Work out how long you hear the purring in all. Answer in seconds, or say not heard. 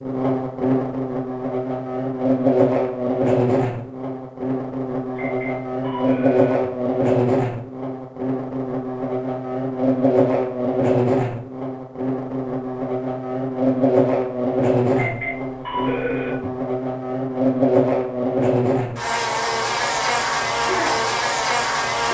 not heard.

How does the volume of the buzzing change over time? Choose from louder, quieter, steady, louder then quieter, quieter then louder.
steady.